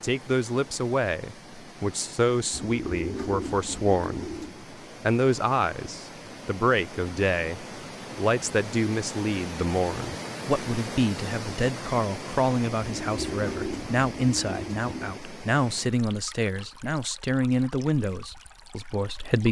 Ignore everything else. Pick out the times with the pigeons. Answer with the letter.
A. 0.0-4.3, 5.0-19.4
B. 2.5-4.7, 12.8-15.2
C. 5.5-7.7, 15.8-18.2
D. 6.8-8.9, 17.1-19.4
B.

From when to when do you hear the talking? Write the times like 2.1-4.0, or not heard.
0.0-4.3, 5.0-19.4.